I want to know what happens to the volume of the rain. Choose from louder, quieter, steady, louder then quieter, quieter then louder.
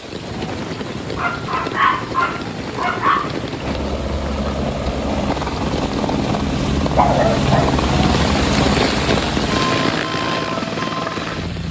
louder.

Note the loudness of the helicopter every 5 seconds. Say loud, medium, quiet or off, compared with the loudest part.
medium, loud, loud.